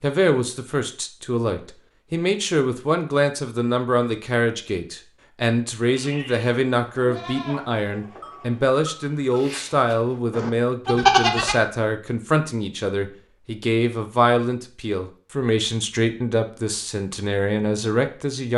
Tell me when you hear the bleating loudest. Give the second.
11 s.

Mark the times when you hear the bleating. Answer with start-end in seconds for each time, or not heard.
5.8-11.6.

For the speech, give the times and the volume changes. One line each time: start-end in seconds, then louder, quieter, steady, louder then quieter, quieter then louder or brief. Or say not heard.
0.0-18.5 steady.